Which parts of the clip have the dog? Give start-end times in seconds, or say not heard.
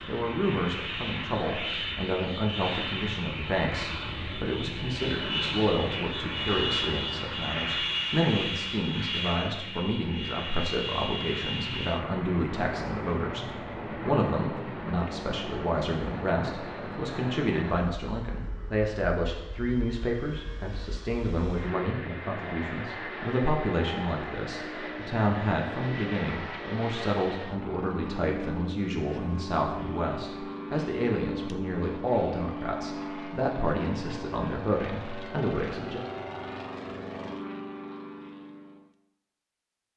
not heard.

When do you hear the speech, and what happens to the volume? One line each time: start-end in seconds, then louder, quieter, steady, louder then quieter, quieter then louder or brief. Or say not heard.
0.1-36.0 steady.